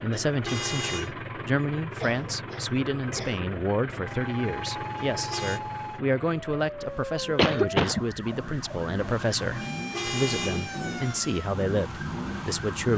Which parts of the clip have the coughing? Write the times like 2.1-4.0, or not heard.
2.0-3.4, 7.3-8.1.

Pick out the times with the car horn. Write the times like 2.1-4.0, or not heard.
0.2-1.1, 5.0-5.6, 9.6-10.8.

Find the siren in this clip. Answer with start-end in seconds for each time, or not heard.
4.0-12.9.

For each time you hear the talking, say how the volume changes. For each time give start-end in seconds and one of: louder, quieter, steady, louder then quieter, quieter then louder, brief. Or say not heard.
0.0-12.9 steady.